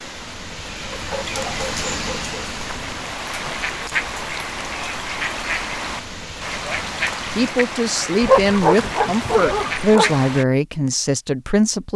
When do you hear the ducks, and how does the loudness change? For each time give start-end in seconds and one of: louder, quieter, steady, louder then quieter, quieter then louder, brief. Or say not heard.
2.4-10.4 steady.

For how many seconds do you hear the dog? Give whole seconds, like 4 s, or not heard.
3 s.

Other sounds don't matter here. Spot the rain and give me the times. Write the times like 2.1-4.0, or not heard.
0.0-7.5.